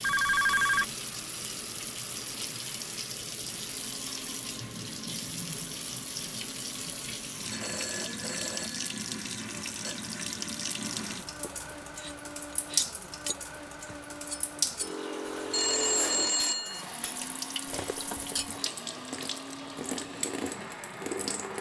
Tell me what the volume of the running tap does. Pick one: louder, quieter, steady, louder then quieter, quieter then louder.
steady.